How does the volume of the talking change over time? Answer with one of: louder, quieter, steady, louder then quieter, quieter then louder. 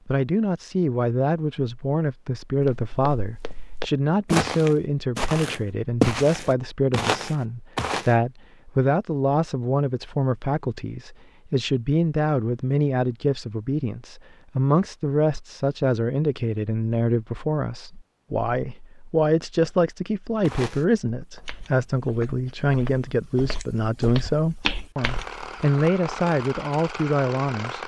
steady.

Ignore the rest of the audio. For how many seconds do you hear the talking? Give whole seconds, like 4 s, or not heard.
28 s.